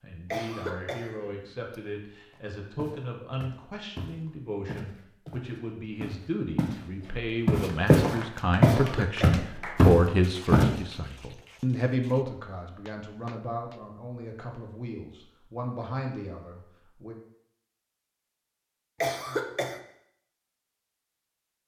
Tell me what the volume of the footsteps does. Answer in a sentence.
The loudness of the footsteps goes up.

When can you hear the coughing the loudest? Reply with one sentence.
The volume of the coughing peaks at 19 seconds.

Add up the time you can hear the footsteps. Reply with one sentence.
You can hear the footsteps for 8 seconds altogether.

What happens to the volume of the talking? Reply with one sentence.
The volume of the talking goes up, then down.